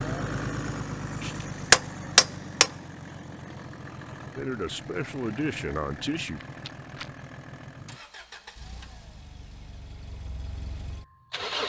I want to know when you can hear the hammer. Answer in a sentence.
You can hear the hammer from 1.2 to 2.7 s.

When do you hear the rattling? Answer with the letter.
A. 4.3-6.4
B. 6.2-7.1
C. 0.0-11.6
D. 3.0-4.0
B.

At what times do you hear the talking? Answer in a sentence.
You can hear the talking from 4.3 to 6.4 s.